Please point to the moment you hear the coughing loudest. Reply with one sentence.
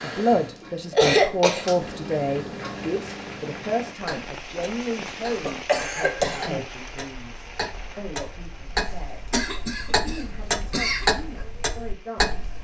The loudest moment of the coughing is at 1 second.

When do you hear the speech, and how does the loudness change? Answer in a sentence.
The speech can be heard from 0.0 to 9.2 s, getting quieter; and briefly from 10.0 to 12.5 s.